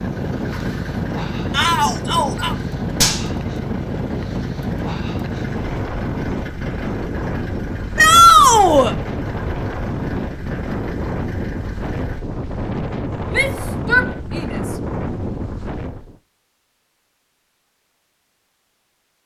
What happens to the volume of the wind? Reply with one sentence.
The loudness of the wind stays about the same.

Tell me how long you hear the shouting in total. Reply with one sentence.
The shouting can be heard for 3 seconds in total.